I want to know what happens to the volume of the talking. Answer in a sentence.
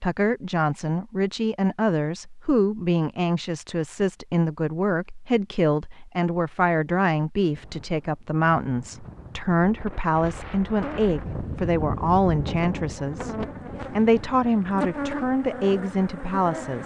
The loudness of the talking stays about the same.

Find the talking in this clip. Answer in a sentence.
The talking can be heard from 0.0 to 16.8 s.